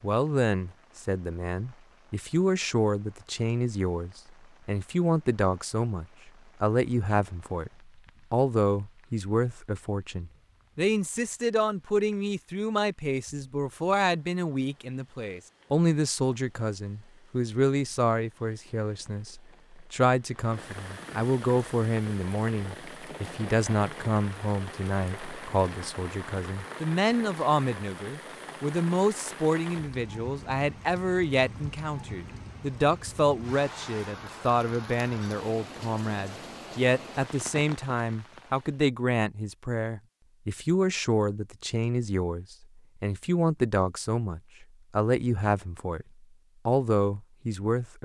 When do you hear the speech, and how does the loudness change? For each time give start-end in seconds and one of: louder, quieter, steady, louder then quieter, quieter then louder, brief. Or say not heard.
0.0-46.0 steady
46.6-48.0 brief.